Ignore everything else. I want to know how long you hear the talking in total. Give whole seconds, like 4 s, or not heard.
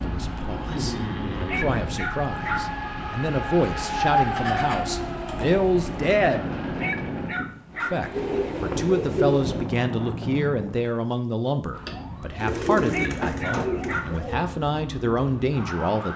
15 s.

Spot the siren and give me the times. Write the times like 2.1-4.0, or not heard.
0.0-7.3, 11.7-16.1.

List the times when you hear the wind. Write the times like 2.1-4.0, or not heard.
0.0-10.9.